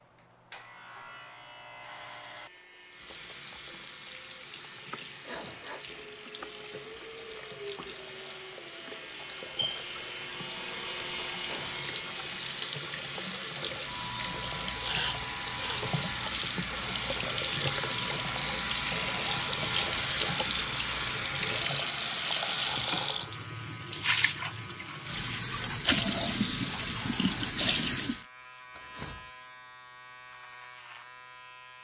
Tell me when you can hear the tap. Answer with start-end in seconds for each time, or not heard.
2.9-28.2.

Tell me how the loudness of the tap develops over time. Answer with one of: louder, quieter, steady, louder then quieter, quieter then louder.
louder.